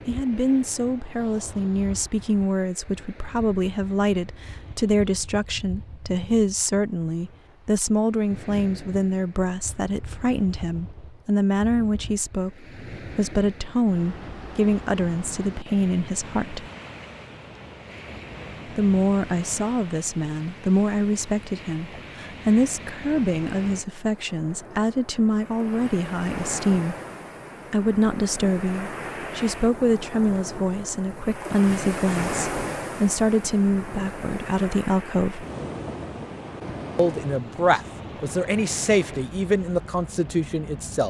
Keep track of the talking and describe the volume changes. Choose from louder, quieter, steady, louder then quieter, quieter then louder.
steady.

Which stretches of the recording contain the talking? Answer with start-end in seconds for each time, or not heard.
0.1-16.6, 18.6-26.9, 27.7-35.5, 37.0-41.0.